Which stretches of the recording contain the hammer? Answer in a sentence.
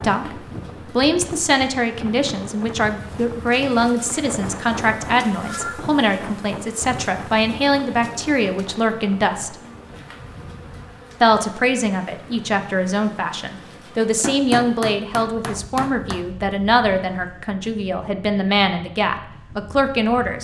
The hammer can be heard from 14.2 to 16.2 s.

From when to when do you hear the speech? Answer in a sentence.
The speech can be heard from 0.0 to 9.6 s and from 11.2 to 20.3 s.